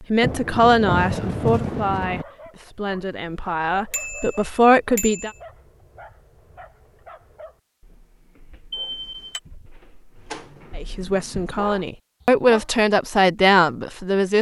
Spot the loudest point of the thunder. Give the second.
1 s.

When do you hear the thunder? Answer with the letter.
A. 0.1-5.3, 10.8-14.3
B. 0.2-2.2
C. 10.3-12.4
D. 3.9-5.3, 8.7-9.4
B.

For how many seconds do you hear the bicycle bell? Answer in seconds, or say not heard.
2 s.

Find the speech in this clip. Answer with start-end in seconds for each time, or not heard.
0.1-5.3, 10.8-14.3.